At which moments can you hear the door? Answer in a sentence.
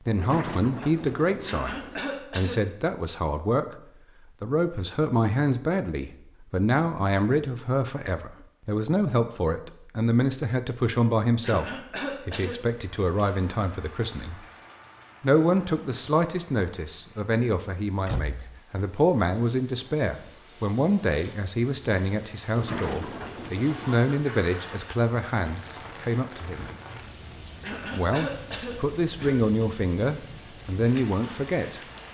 You can hear the door from 0.1 to 2.1 s, from 18.1 to 18.6 s and from 22.6 to 24.3 s.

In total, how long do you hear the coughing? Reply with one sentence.
The coughing can be heard for 4 seconds in total.